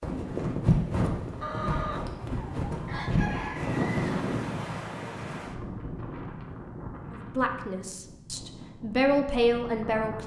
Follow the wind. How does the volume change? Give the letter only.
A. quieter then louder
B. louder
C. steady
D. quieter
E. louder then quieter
D.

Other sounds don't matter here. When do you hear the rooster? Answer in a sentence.
You can hear the rooster from 1.4 to 4.2 s.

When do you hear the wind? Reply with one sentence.
The wind can be heard from 0.0 to 10.2 s.